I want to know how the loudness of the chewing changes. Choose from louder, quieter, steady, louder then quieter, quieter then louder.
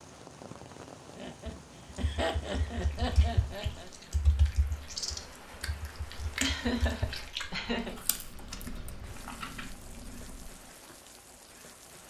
louder then quieter.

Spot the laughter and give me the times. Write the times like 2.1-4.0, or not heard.
1.1-3.9, 6.4-8.0.